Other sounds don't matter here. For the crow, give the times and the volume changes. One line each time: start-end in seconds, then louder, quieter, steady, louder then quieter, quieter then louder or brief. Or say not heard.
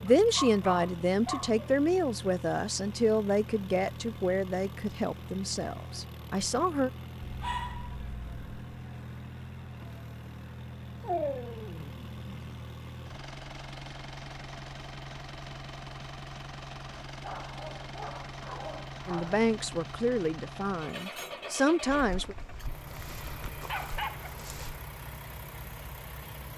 not heard.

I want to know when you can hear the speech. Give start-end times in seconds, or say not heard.
0.0-6.9, 19.1-22.4.